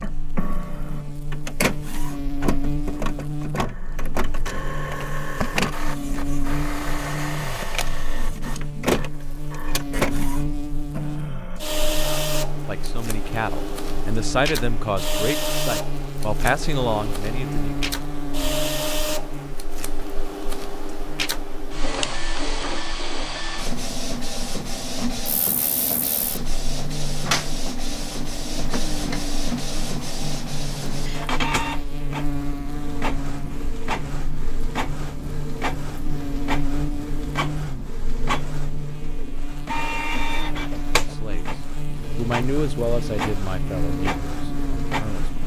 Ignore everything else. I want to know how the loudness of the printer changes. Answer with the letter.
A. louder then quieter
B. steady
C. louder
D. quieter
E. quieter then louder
B.